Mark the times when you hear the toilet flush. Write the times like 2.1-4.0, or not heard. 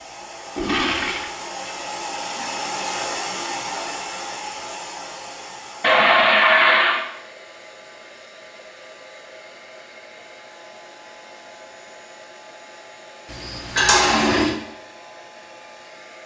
0.6-1.3, 5.8-7.0, 13.3-14.6.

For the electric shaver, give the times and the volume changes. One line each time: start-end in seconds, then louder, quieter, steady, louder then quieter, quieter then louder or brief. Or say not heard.
not heard.